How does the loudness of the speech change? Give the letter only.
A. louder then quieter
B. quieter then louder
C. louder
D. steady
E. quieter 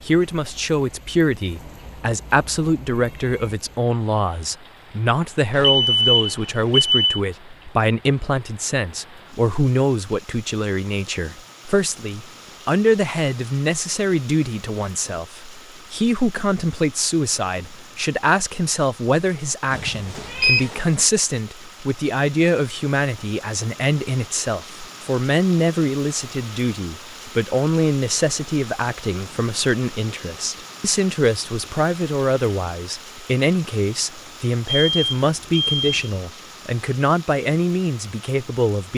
D.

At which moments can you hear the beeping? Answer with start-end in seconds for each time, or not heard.
5.5-7.2, 19.8-20.6, 34.6-36.1.